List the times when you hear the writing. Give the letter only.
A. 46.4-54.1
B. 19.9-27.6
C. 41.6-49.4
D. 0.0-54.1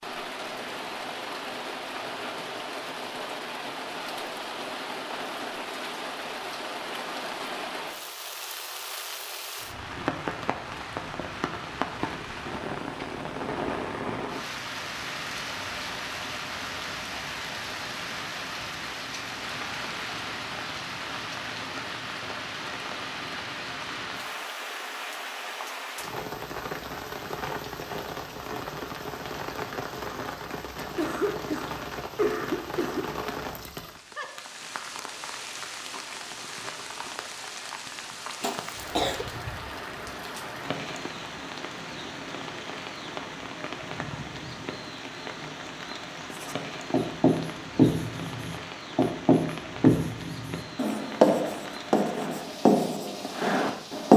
A.